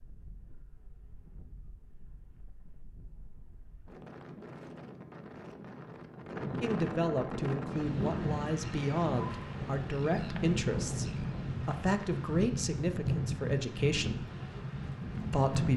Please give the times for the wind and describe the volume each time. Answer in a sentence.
You can hear the wind from 0.0 to 15.7 s, getting louder.